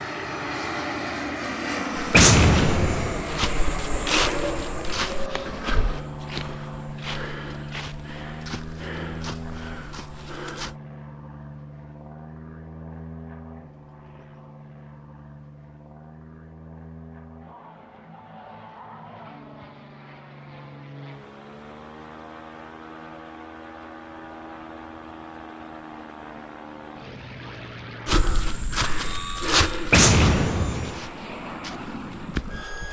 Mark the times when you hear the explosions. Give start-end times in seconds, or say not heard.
2.1-3.2, 29.9-31.0.